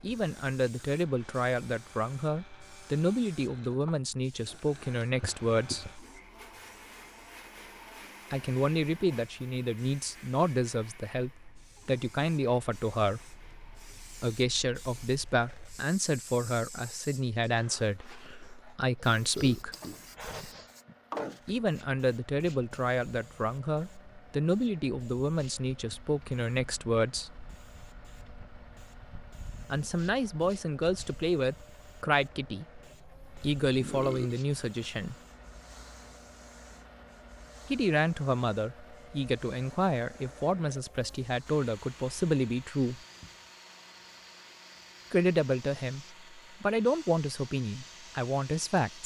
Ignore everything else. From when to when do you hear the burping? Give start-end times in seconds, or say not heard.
5.2-5.9, 19.1-20.7, 33.8-34.4.